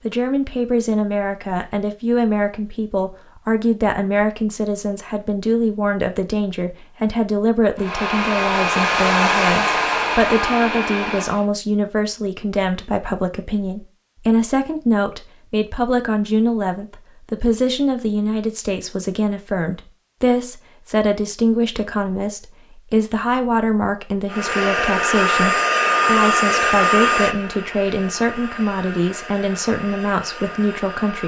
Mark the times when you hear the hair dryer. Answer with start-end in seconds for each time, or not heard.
7.8-11.4, 24.3-31.2.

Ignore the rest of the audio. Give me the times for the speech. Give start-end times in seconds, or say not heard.
0.0-31.2.